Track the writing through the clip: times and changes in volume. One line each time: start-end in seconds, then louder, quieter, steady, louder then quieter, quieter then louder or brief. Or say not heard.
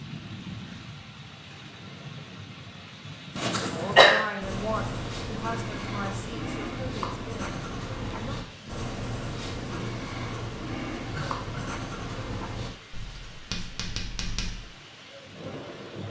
3.4-14.7 steady.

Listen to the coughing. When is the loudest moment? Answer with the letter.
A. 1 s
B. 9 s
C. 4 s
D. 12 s
C.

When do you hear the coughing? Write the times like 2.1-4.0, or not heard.
3.4-4.2, 11.1-11.8.